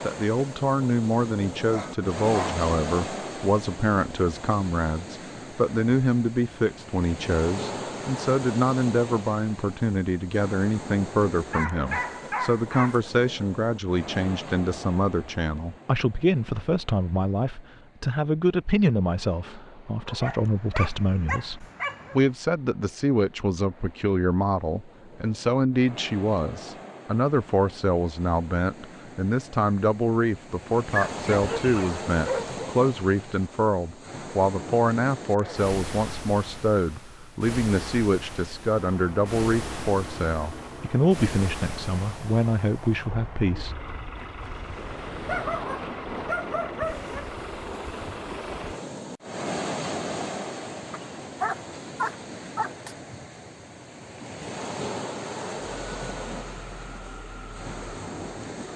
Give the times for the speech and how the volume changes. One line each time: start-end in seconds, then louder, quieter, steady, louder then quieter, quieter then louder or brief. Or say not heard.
0.0-43.8 steady.